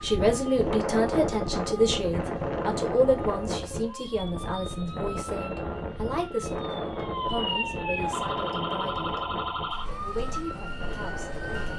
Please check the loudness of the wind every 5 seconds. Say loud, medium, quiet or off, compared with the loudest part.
loud, loud, medium.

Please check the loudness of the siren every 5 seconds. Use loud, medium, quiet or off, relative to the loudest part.
medium, loud, loud.